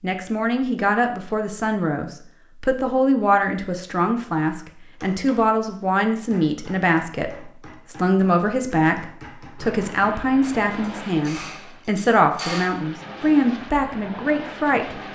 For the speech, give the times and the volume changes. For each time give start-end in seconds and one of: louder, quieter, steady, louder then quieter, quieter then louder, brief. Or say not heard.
0.0-15.0 steady.